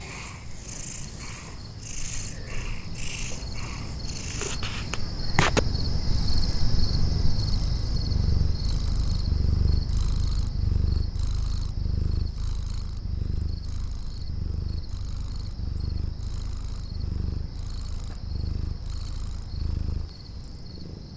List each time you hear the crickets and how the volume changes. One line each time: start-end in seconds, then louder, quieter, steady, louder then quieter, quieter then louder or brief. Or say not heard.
0.0-21.1 louder then quieter.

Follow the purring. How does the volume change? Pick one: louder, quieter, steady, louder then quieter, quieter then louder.
louder then quieter.